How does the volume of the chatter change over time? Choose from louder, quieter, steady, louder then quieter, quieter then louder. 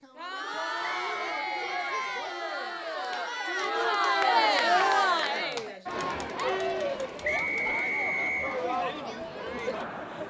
louder then quieter.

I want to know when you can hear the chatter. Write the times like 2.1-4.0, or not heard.
0.0-10.2.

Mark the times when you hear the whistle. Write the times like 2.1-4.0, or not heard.
0.8-2.3, 7.2-8.6.